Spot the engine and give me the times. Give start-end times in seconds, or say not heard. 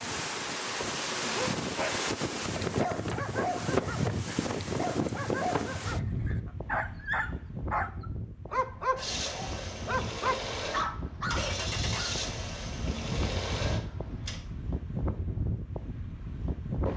8.9-14.4.